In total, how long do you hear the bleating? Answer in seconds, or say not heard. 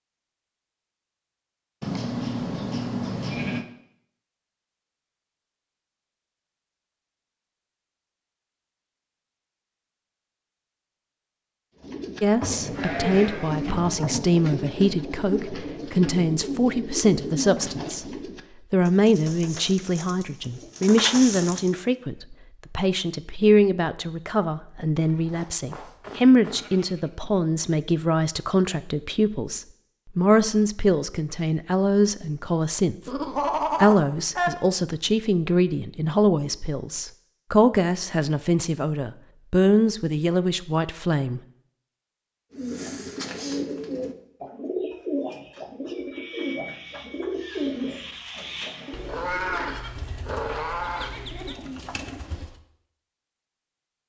10 s.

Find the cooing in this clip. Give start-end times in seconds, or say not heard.
11.8-21.8, 42.5-52.5.